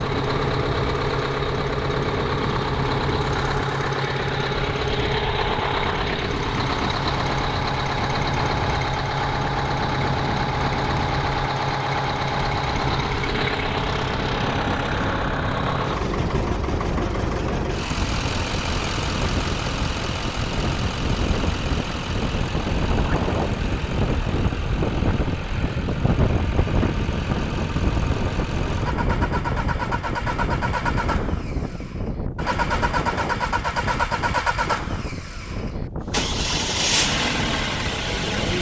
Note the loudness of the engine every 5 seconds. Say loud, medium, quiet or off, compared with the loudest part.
loud, loud, loud, loud, medium, medium, loud, loud.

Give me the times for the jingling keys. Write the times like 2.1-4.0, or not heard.
not heard.